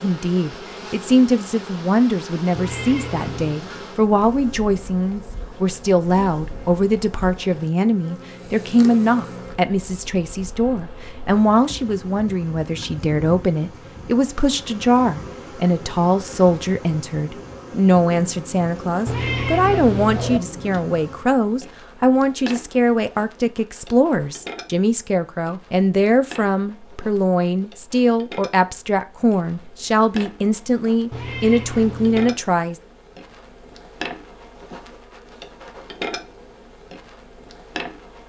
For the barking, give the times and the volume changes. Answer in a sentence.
You can't hear the barking here.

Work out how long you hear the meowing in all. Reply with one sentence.
You can hear the meowing for 4 seconds altogether.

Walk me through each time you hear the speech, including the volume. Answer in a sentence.
The speech can be heard from 0.0 to 32.8 s, at a steady volume.